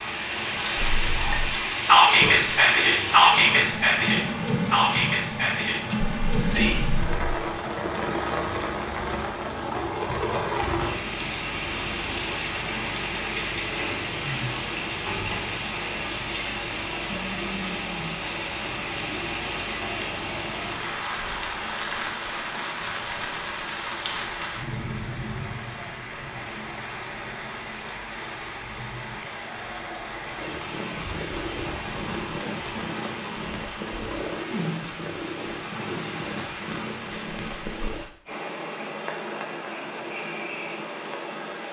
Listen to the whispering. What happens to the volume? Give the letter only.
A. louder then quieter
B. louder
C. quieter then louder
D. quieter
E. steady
D.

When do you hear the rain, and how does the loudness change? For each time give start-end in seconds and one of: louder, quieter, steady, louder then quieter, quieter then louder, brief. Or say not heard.
0.0-41.6 quieter.